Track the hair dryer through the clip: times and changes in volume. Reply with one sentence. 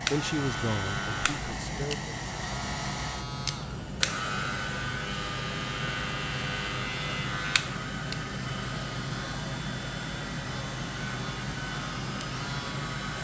You can hear the hair dryer from 0.0 to 13.1 s, at a steady volume.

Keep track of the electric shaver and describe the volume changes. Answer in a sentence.
The volume of the electric shaver stays about the same.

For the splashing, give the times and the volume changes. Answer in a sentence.
You can't hear the splashing here.